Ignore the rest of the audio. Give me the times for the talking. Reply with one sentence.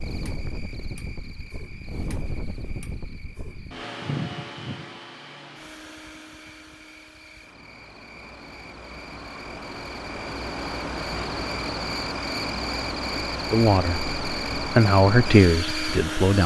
The talking can be heard from 13.5 to 16.4 s.